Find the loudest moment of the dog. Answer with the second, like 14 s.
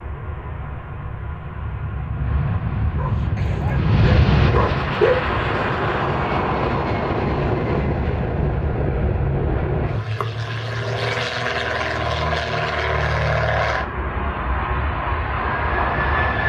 5 s.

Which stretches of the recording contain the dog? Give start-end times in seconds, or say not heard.
3.0-5.3.